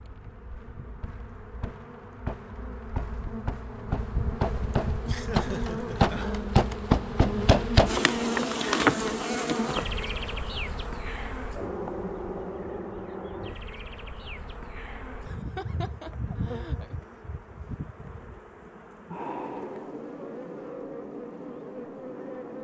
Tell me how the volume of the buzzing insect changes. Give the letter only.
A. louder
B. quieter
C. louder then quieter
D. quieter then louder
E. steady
C.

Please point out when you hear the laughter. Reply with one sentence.
The laughter can be heard from 5.0 to 6.2 s and from 15.2 to 16.9 s.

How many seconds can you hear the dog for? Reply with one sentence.
You can't hear the dog here.